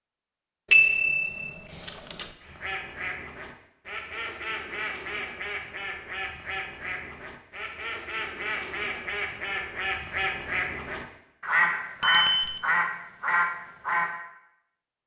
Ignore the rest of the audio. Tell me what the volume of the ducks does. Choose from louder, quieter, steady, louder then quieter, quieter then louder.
louder.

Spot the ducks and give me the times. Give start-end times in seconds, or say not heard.
2.4-14.2.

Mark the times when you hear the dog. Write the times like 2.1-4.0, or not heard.
not heard.